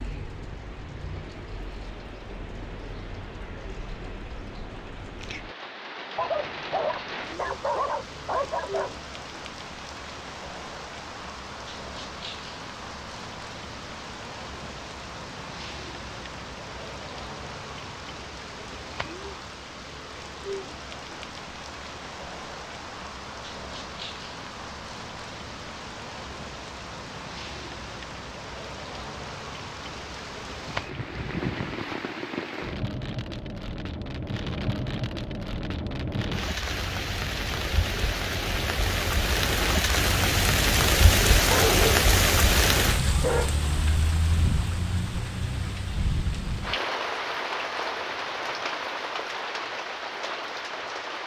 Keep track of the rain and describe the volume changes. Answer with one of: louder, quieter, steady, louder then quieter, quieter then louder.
louder.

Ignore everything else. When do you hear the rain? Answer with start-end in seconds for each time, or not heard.
0.0-51.2.